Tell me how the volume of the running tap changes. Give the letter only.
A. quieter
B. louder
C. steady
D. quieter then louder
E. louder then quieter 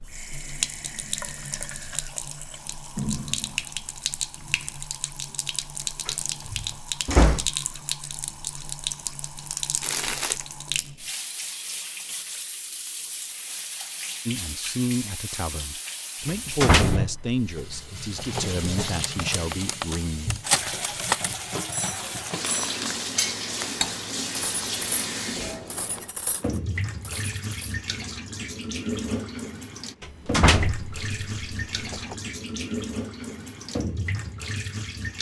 C.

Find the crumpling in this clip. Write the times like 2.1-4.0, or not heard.
9.8-10.4, 21.8-23.7.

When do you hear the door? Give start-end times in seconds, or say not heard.
6.0-7.5, 16.2-18.9, 30.0-32.1.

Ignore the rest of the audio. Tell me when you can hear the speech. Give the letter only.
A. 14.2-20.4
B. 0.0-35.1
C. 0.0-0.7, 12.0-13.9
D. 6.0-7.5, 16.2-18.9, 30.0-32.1
A.